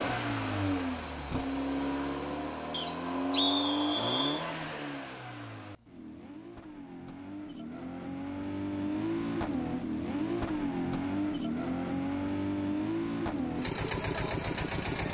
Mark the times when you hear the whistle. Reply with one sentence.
The whistle can be heard from 2.7 to 4.5 s.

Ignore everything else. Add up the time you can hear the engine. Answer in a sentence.
You can hear the engine for 15 seconds altogether.